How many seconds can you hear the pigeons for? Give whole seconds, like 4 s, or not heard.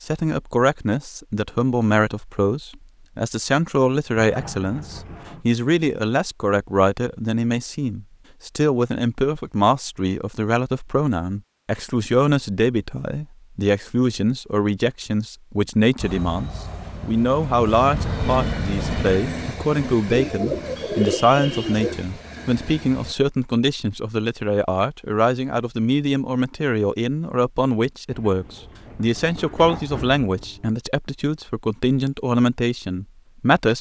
2 s.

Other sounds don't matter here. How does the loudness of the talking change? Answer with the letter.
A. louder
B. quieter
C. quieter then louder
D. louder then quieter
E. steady
E.